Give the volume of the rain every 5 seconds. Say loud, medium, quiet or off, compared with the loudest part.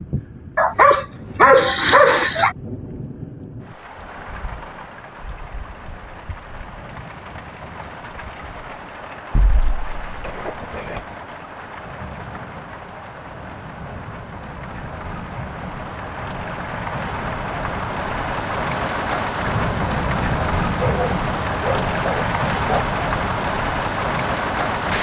quiet, quiet, quiet, loud, loud.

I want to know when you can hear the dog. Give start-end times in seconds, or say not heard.
0.6-2.5, 9.3-11.1, 20.8-22.8.